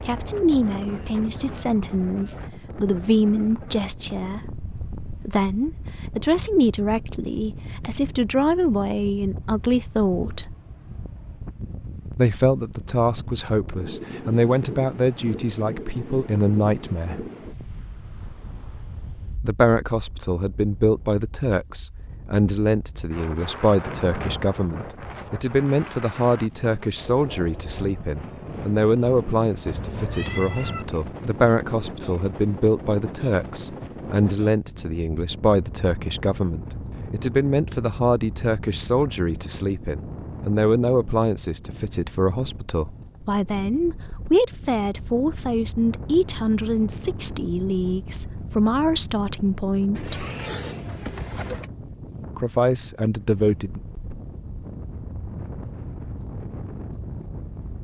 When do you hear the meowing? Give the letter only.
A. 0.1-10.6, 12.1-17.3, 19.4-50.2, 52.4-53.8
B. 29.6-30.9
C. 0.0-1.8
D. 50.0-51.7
B.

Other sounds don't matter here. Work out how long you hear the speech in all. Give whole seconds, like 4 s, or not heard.
48 s.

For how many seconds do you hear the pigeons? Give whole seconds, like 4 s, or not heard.
2 s.